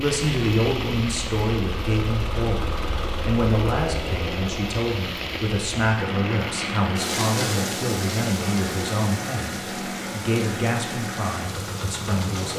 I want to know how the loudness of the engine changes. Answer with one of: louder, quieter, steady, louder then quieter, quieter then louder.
steady.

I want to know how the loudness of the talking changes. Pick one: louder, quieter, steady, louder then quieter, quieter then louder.
steady.